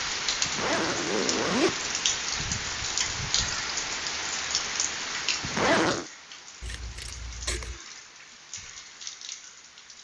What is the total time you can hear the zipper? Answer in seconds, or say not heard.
2 s.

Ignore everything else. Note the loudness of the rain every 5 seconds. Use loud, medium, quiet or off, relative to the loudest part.
loud, medium.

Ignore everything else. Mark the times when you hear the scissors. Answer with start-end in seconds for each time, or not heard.
6.6-7.8.